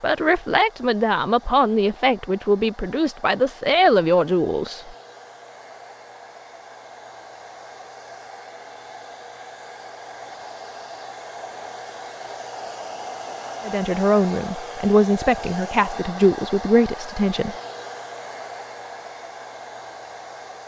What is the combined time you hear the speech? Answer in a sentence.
You can hear the speech for 9 seconds altogether.